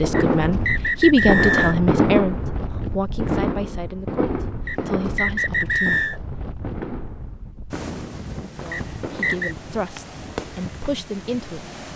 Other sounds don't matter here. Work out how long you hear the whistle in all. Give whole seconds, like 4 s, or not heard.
4 s.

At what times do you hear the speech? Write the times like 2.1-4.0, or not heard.
0.0-6.1, 8.6-11.7.